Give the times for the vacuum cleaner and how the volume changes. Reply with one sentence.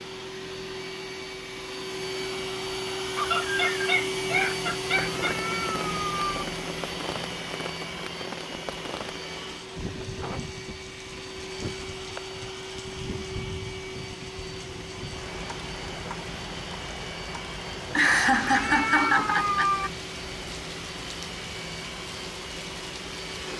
The vacuum cleaner can be heard from 0.0 to 23.5 s, getting quieter.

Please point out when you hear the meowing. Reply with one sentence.
You can hear the meowing from 5.2 to 6.5 s and from 18.4 to 19.9 s.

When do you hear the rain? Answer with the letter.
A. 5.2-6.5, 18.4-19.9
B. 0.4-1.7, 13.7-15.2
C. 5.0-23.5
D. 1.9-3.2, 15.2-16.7
C.